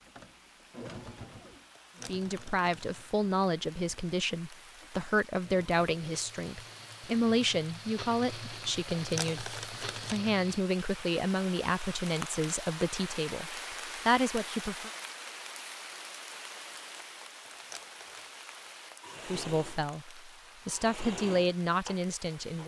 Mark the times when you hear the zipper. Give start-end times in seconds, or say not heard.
not heard.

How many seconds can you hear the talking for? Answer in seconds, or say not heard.
16 s.